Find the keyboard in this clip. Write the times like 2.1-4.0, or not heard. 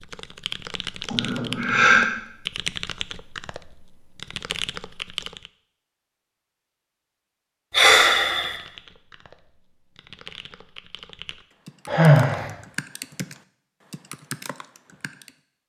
0.0-5.5, 8.3-15.3.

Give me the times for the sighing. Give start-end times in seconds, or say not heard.
1.1-2.0, 7.7-8.6, 11.8-12.5.